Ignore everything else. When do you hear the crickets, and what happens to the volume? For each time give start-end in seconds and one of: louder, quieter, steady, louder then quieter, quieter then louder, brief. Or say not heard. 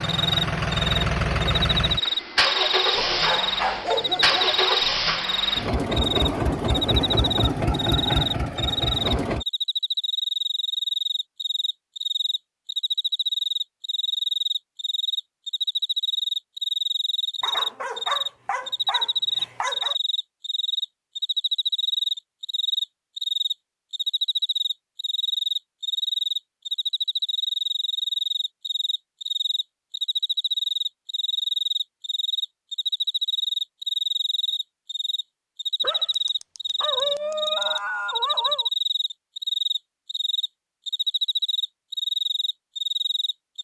0.0-43.6 steady.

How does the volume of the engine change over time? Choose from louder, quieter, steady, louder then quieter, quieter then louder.
steady.